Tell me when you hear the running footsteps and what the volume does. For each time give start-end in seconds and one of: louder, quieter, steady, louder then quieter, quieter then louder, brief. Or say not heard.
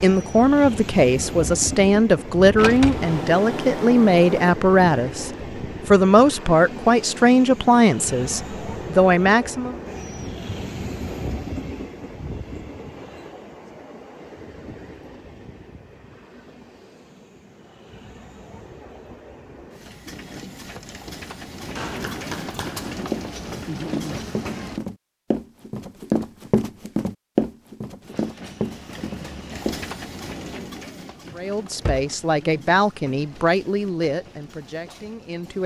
21.8-29.8 louder then quieter.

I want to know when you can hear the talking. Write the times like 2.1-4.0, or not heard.
0.0-9.8, 31.4-35.6.